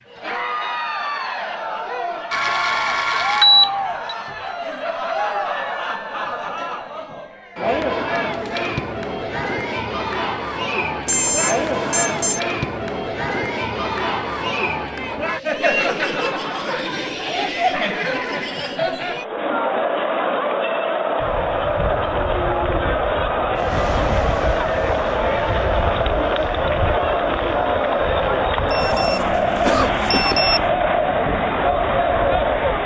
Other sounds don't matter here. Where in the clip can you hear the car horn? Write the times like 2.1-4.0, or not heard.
not heard.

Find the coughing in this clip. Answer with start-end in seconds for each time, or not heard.
29.6-30.4.